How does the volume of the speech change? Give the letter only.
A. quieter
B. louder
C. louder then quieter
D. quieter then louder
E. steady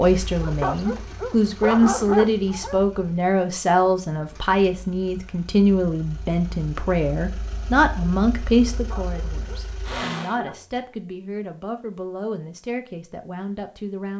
A.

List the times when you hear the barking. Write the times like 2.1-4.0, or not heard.
0.4-2.8, 8.7-10.9.